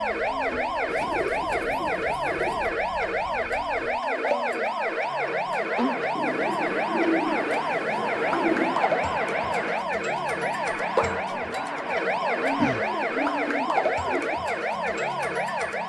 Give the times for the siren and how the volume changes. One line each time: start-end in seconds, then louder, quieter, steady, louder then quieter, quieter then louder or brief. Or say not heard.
0.0-15.8 steady.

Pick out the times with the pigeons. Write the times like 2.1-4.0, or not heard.
0.8-2.7, 6.2-8.8, 12.4-14.4.